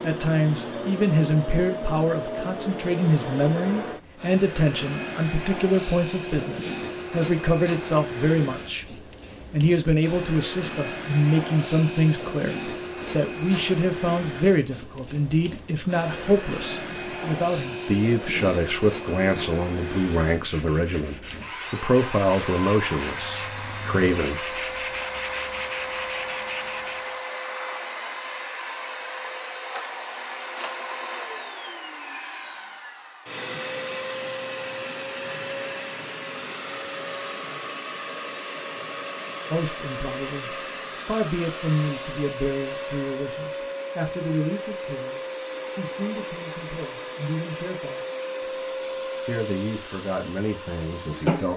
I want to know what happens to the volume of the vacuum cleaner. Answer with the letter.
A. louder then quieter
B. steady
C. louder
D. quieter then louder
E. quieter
B.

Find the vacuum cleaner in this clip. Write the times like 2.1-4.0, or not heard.
0.0-51.5.